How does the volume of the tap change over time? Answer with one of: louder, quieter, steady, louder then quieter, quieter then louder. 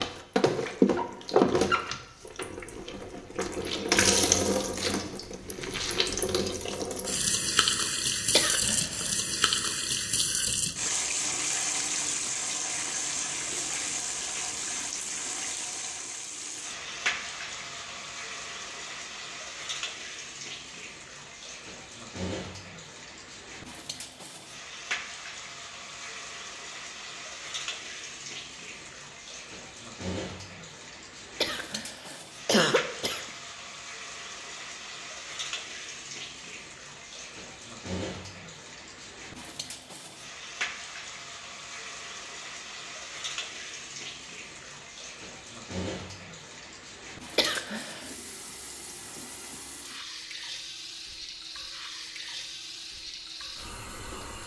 quieter.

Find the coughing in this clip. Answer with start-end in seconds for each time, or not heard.
8.3-9.1, 31.4-33.2, 47.4-48.1.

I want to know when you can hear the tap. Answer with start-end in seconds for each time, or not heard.
0.0-54.4.